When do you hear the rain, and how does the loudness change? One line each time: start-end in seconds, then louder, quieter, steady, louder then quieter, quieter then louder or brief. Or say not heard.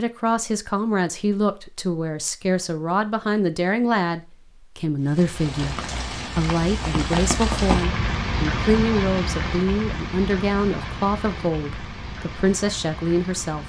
5.0-13.6 louder then quieter.